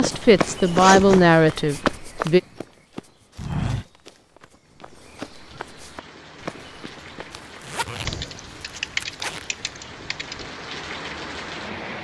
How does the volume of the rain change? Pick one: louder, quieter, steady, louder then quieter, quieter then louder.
louder.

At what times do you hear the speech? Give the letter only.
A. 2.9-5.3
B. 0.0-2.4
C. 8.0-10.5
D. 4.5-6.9
B.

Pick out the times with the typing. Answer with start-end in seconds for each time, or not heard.
8.0-10.5.